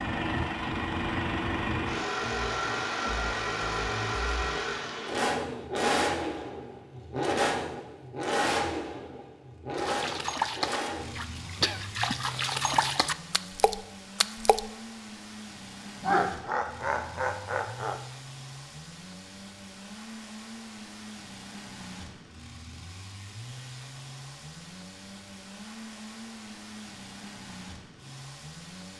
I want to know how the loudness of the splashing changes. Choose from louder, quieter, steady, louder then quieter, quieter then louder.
steady.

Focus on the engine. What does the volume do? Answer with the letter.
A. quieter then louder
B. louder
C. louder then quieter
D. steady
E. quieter
E.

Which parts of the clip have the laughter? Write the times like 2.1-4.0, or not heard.
16.0-18.0.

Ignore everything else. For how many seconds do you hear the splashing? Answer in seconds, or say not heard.
5 s.